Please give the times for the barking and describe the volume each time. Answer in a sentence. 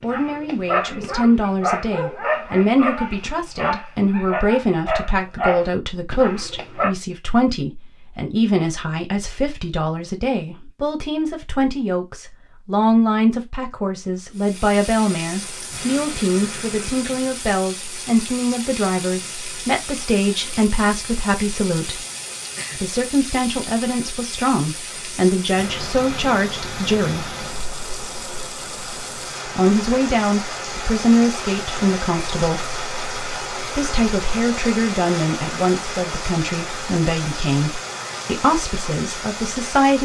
You can hear the barking from 0.0 to 7.0 s, at a steady volume.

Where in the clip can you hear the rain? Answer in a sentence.
The rain can be heard from 14.3 to 40.0 s.